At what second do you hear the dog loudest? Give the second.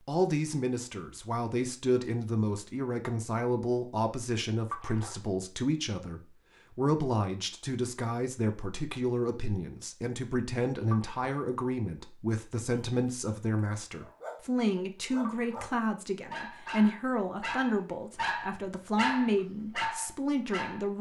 19 s.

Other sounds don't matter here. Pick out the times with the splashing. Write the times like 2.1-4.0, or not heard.
4.7-5.2, 10.8-11.3, 15.2-15.8.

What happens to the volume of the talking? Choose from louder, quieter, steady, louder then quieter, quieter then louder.
steady.